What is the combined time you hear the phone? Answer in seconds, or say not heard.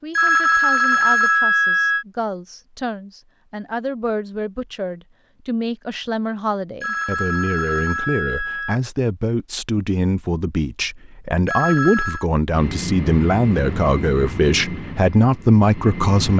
5 s.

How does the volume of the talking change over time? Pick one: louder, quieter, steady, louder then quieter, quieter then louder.
louder.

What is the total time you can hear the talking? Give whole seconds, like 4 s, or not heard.
16 s.